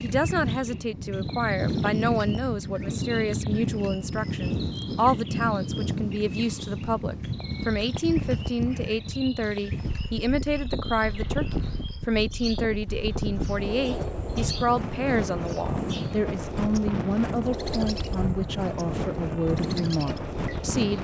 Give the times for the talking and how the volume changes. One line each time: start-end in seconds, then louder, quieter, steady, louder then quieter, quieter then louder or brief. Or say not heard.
0.0-21.0 steady.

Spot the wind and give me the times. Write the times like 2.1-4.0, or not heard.
0.0-21.0.